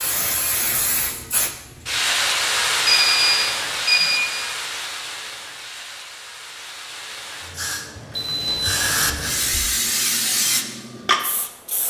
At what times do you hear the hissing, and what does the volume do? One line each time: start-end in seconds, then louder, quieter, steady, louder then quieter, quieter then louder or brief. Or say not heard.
0.0-11.8 quieter then louder.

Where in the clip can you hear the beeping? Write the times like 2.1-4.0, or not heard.
2.9-4.3, 8.1-9.6.